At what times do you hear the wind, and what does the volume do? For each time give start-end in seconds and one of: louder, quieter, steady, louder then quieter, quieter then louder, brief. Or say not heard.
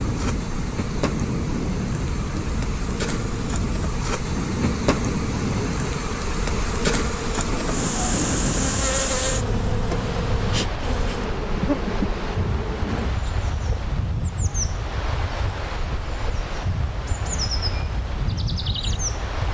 0.0-19.4 steady.